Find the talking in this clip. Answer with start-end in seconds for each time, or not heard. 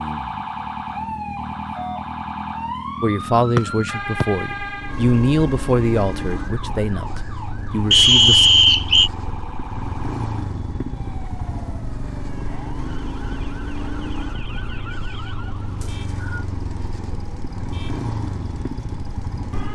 3.0-8.5.